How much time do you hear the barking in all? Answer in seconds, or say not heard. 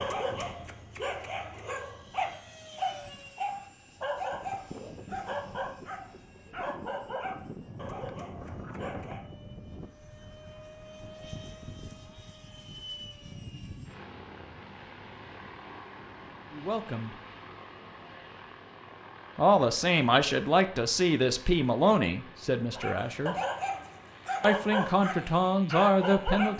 13 s.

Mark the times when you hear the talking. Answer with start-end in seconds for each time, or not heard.
16.6-17.1, 19.4-23.4, 24.4-26.5.